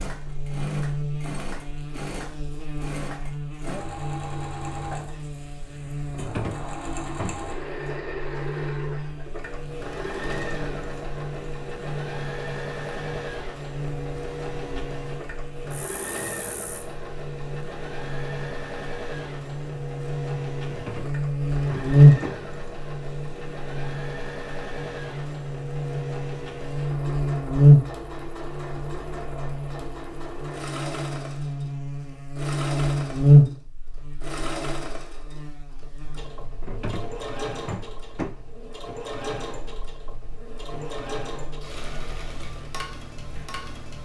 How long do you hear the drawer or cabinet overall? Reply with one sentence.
You can hear the drawer or cabinet for 5 seconds altogether.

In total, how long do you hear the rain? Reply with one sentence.
You can't hear the rain here.